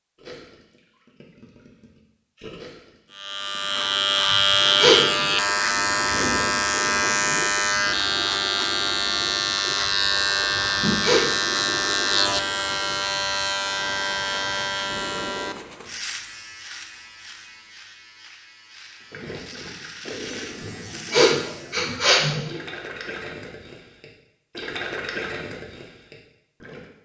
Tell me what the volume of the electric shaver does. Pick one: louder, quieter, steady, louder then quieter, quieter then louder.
quieter.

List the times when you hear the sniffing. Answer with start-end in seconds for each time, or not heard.
4.2-5.0, 10.5-11.6, 20.6-22.6.